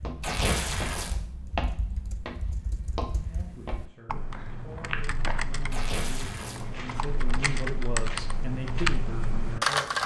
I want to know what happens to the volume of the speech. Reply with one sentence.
The volume of the speech goes up.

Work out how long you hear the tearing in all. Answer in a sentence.
The tearing can be heard for 2 seconds in total.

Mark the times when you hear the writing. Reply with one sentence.
The writing can't be heard in this clip.